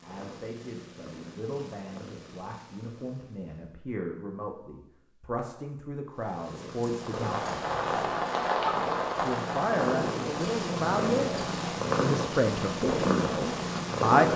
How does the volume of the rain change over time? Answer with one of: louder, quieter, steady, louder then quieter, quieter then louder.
quieter.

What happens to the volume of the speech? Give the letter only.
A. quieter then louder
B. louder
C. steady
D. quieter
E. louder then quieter
B.